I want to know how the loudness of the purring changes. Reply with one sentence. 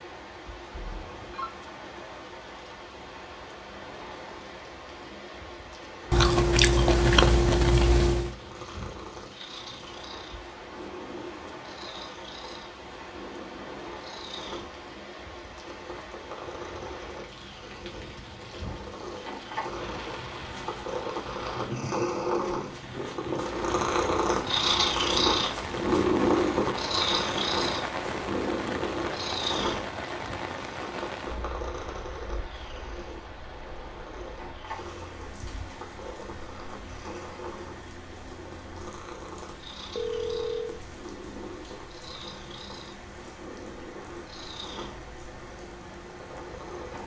The volume of the purring goes up, then down.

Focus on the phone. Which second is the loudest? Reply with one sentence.
The volume of the phone peaks at 40 seconds.